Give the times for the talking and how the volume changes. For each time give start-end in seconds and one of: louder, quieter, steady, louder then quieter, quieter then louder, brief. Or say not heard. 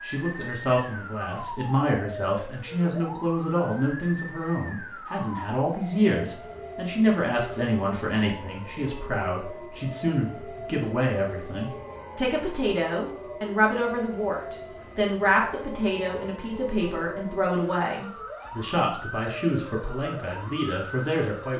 0.0-21.5 steady.